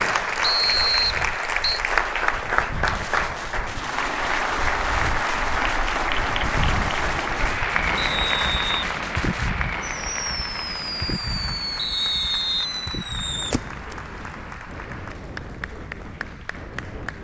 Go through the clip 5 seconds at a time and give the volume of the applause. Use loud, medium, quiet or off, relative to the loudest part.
loud, loud, quiet, quiet.